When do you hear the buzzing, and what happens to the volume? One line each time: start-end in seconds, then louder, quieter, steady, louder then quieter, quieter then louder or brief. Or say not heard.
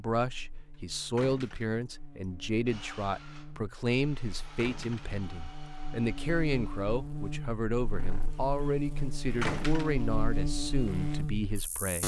0.1-12.0 louder.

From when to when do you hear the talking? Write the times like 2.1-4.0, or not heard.
0.0-12.0.